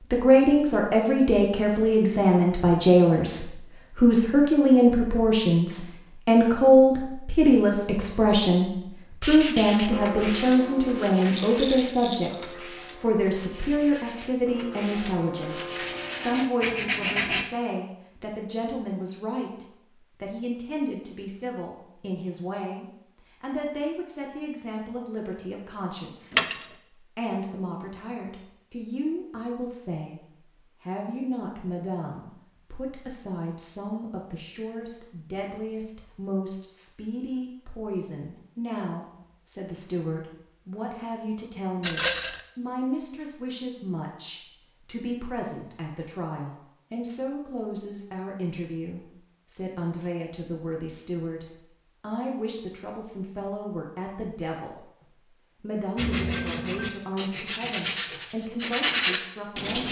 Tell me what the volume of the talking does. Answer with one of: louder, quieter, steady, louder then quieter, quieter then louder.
quieter.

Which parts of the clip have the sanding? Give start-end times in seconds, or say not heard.
9.2-17.4, 56.0-59.8.